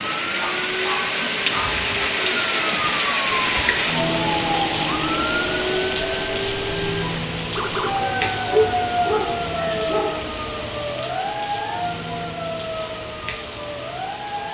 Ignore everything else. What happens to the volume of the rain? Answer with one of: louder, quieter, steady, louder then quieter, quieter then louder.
quieter.